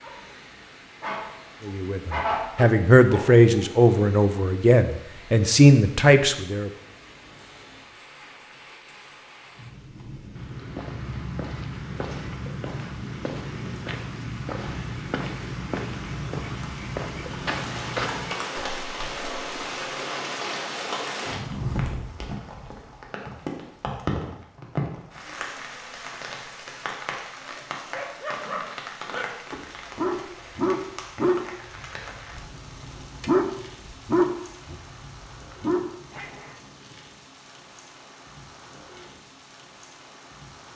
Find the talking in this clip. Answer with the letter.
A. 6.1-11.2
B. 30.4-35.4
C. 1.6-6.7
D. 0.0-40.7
C.